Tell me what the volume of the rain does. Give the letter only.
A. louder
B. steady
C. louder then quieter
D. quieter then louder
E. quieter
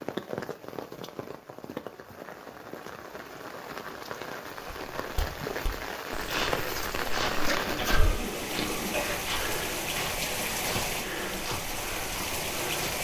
A.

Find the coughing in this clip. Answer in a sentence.
You can hear the coughing from 7.2 to 9.2 s.